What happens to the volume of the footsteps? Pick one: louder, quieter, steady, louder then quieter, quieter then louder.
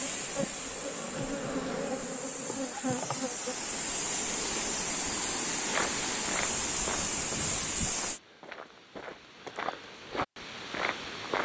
quieter then louder.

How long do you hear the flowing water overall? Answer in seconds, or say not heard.
8 s.